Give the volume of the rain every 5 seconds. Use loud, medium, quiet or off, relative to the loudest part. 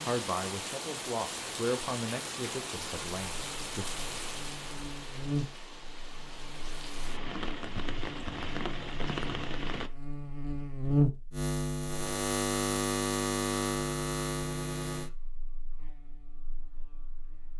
loud, loud, off, off.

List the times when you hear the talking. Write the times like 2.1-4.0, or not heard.
0.1-3.9.